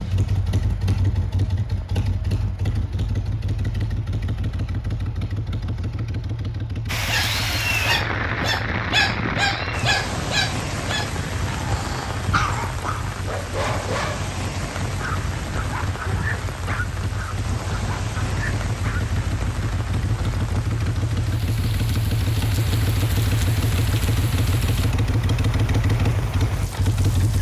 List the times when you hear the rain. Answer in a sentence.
The rain can be heard from 6.8 to 27.3 s.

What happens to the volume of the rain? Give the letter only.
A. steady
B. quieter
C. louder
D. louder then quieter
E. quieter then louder
B.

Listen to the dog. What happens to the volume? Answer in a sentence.
The loudness of the dog goes down.